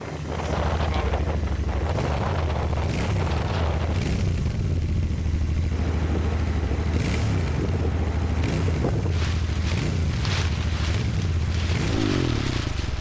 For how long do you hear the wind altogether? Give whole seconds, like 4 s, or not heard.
13 s.